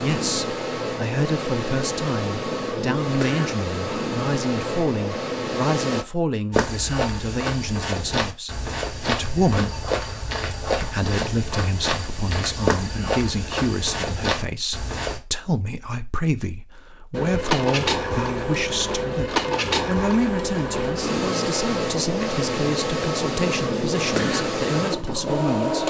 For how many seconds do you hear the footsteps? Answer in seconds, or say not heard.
9 s.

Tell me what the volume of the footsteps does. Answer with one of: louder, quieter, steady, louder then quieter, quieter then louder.
steady.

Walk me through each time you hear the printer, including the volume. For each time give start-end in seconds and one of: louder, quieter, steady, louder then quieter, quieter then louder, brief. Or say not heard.
0.0-6.0 steady
17.1-25.8 steady.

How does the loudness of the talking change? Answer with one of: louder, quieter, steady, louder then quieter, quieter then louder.
steady.